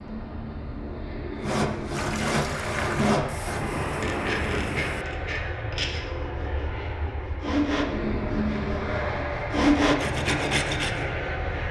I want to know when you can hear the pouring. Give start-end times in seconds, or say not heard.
1.9-3.1.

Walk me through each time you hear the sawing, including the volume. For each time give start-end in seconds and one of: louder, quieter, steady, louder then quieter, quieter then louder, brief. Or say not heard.
1.4-11.1 quieter then louder.